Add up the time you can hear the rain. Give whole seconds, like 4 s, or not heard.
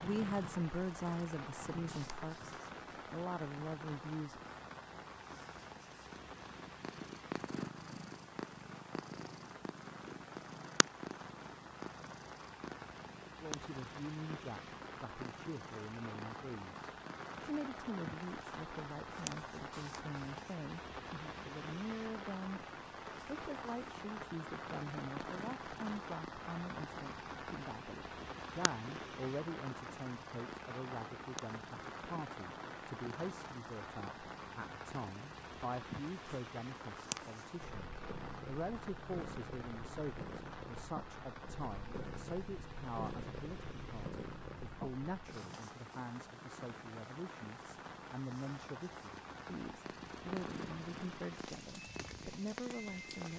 53 s.